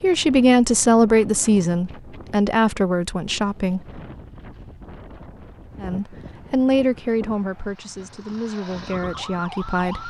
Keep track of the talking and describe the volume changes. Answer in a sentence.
The loudness of the talking goes down.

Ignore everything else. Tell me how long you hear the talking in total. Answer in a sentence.
The talking can be heard for 8 seconds in total.